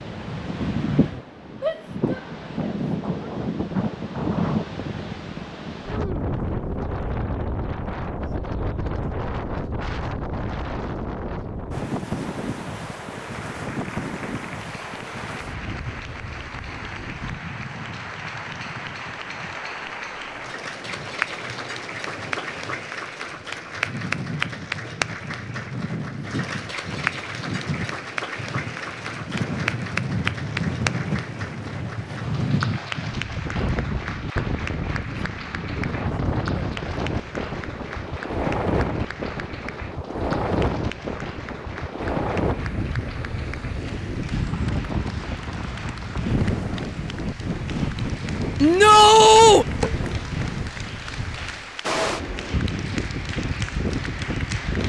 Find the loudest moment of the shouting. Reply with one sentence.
The loudest moment of the shouting is at 49 seconds.